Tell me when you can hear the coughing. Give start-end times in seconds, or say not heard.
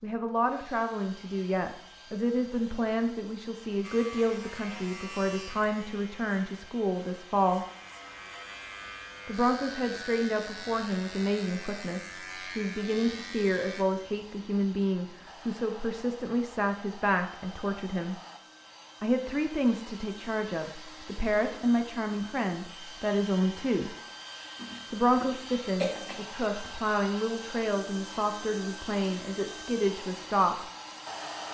24.6-26.8.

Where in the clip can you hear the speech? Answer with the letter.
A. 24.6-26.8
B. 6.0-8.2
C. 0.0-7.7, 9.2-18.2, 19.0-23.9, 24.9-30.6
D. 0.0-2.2
C.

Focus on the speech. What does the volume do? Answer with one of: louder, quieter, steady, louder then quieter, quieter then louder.
steady.